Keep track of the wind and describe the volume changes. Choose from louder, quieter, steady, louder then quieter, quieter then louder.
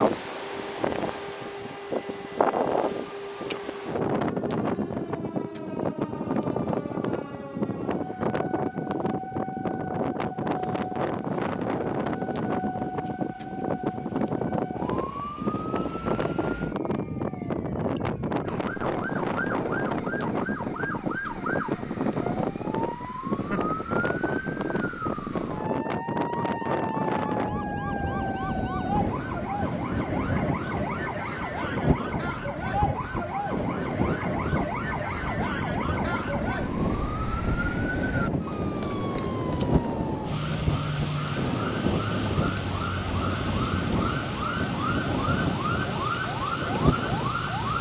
steady.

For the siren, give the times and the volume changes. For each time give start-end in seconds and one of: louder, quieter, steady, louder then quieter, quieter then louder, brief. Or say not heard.
0.2-47.7 louder.